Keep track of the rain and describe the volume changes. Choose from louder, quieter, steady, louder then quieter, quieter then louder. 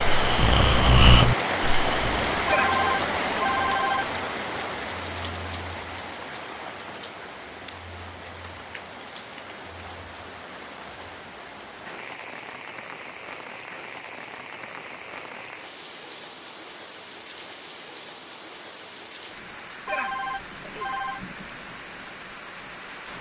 quieter.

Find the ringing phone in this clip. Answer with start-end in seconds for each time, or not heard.
2.5-4.0, 19.9-21.2.